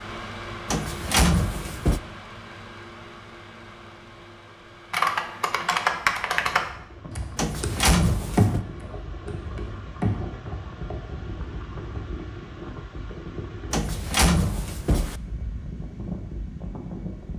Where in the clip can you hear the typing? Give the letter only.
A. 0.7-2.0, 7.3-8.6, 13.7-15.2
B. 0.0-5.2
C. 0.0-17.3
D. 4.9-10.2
D.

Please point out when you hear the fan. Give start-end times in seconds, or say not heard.
0.0-17.3.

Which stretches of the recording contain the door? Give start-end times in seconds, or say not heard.
0.7-2.0, 7.3-8.6, 13.7-15.2.